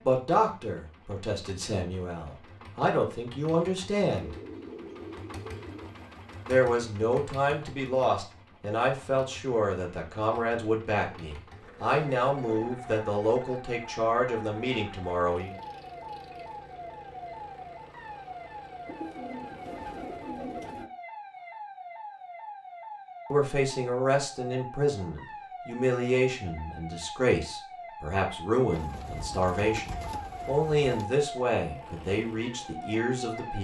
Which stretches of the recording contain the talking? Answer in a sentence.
The talking can be heard from 0.0 to 4.3 s, from 6.5 to 15.6 s and from 23.3 to 33.6 s.